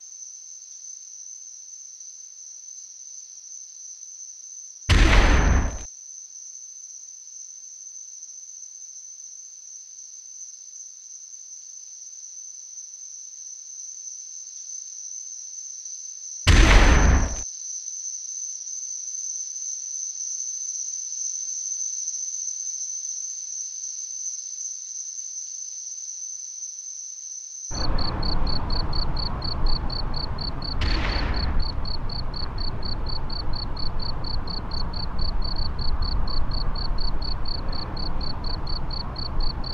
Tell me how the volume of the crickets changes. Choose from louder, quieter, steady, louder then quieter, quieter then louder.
louder.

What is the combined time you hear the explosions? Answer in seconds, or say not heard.
3 s.